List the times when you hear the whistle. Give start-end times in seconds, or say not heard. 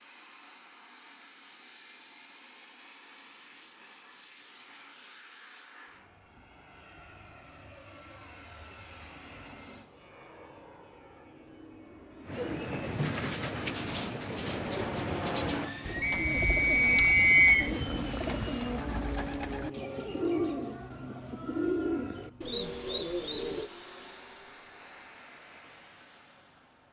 16.0-17.7.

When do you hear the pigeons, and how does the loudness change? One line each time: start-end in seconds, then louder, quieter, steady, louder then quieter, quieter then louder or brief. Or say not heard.
12.2-23.7 steady.